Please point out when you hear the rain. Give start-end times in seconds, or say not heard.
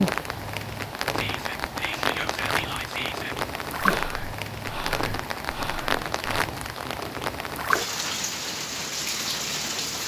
0.0-10.0.